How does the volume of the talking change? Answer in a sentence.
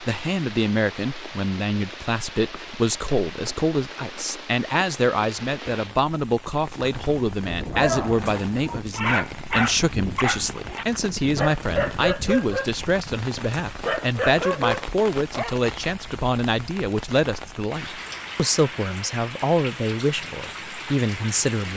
The volume of the talking stays about the same.